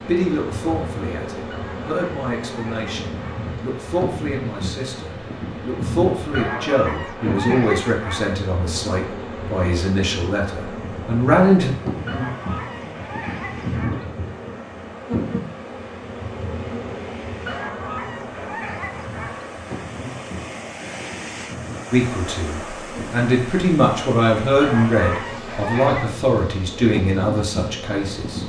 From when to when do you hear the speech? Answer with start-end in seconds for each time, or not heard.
0.0-11.7, 21.9-28.4.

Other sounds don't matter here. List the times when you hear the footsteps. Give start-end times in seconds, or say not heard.
not heard.